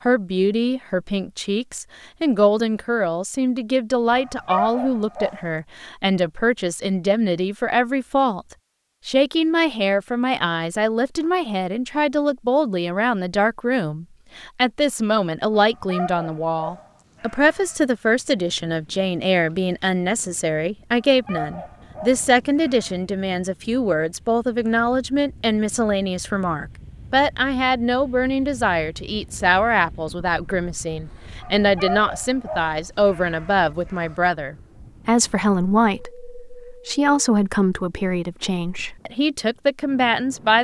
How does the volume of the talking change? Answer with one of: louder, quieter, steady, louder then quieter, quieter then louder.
steady.